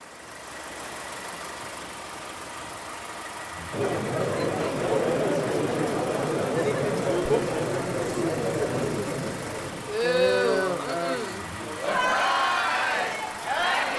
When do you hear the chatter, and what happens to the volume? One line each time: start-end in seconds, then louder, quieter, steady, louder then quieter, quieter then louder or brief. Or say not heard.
3.7-13.9 steady.